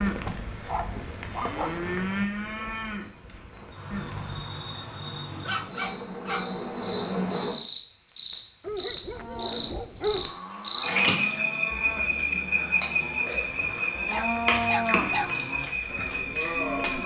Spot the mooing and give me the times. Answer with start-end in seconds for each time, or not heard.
0.0-4.5, 9.1-17.0.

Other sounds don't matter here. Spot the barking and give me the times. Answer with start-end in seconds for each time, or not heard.
0.7-1.9, 5.2-6.6, 8.6-10.3, 14.1-15.3.